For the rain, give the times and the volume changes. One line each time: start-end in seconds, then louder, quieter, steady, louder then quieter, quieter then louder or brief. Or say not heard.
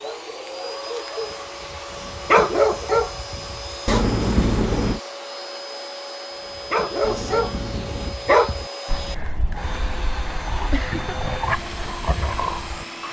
not heard.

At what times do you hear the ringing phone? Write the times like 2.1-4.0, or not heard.
3.9-5.0, 7.0-8.2.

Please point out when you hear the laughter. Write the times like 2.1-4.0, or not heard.
10.7-11.3.